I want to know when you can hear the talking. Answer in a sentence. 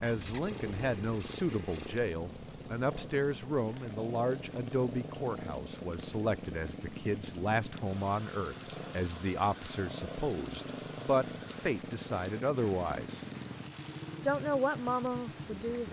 You can hear the talking from 0.0 to 13.2 s and from 14.2 to 15.8 s.